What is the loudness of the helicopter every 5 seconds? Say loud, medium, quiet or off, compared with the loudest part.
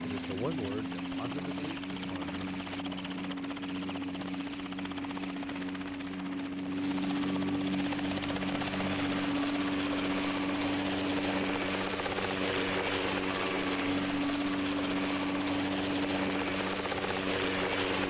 medium, loud, loud, loud.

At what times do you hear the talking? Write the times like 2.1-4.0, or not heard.
0.0-2.4.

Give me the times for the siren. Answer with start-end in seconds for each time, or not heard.
not heard.